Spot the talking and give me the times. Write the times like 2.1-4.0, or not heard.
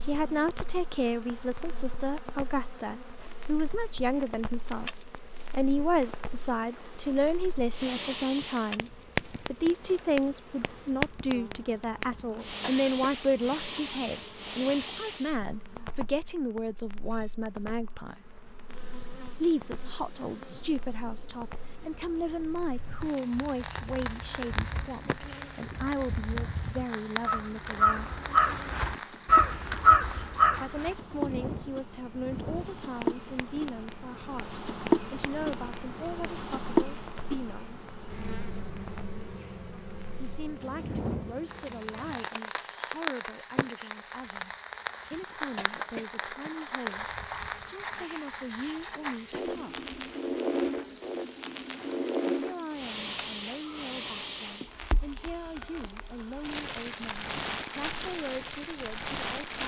0.0-18.3, 19.4-28.1, 30.6-37.8, 40.2-44.5, 45.1-49.9, 52.4-59.6.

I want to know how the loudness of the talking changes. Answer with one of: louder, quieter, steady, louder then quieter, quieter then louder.
quieter.